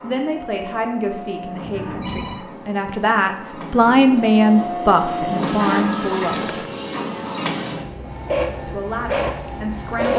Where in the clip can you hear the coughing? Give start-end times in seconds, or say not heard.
not heard.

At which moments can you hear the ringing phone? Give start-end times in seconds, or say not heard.
1.6-2.5, 5.5-6.7.